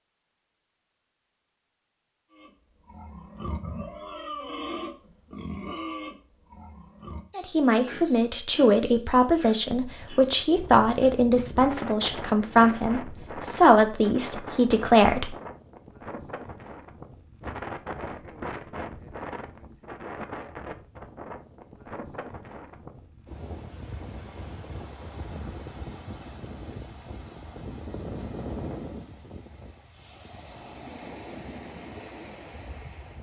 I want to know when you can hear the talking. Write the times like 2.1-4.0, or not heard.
7.3-15.3.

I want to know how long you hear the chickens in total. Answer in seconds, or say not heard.
not heard.